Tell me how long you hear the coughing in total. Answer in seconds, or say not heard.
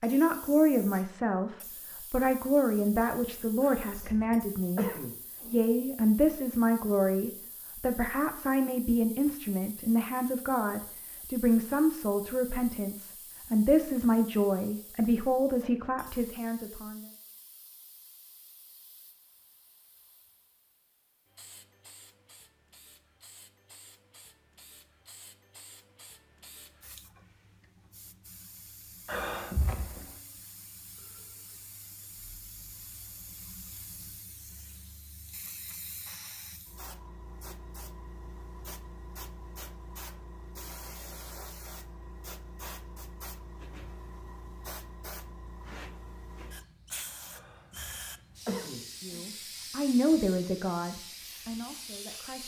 5 s.